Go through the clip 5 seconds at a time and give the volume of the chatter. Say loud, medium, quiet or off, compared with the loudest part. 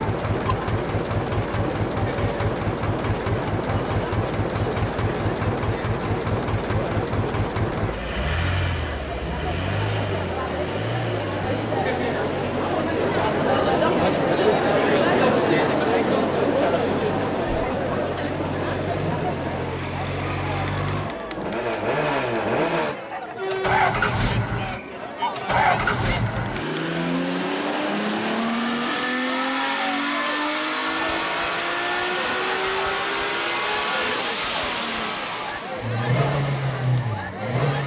medium, medium, loud, loud, medium, medium, medium, medium.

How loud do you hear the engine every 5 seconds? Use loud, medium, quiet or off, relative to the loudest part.
loud, loud, medium, medium, loud, loud, loud, loud.